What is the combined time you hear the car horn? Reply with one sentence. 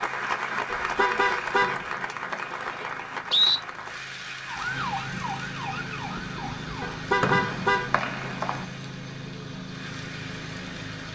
You can hear the car horn for 2 seconds altogether.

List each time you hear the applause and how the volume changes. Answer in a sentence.
You can hear the applause from 0.0 to 11.0 s, getting quieter.